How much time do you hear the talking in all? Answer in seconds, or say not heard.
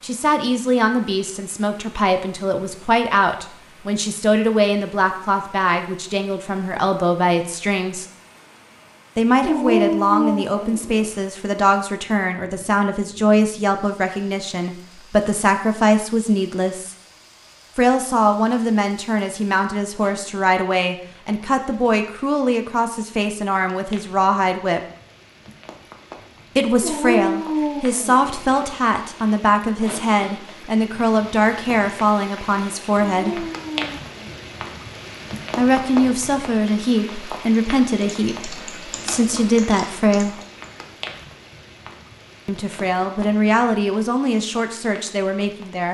38 s.